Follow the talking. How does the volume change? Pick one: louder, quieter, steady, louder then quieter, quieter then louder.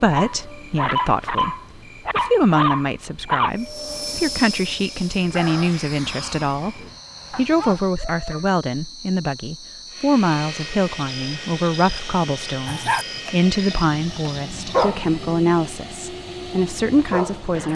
steady.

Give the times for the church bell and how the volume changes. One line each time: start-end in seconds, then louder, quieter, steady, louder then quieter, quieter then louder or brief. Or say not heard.
not heard.